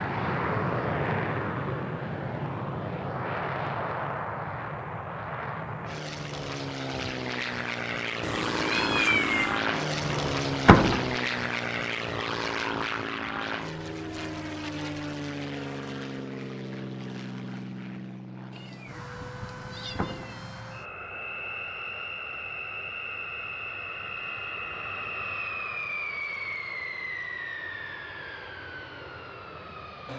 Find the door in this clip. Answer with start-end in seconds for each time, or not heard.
10.1-11.1, 19.4-20.4.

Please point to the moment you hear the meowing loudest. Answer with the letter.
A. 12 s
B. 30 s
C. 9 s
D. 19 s
C.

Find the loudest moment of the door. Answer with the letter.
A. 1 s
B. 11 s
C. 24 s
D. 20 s
B.